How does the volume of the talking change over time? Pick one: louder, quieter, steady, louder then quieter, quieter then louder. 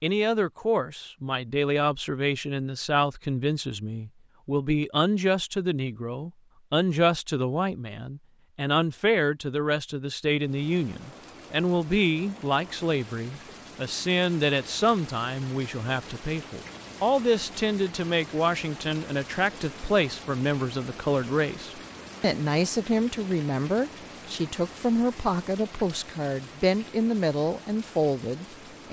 steady.